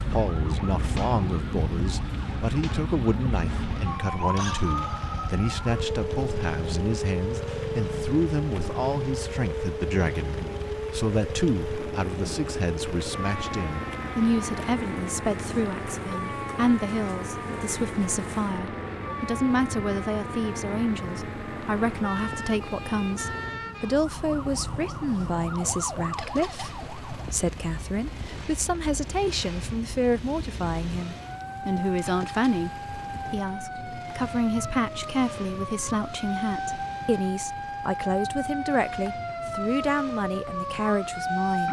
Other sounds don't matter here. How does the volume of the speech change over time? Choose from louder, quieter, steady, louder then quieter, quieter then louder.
steady.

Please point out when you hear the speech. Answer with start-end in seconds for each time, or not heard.
0.0-41.6.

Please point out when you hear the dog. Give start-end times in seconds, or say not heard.
not heard.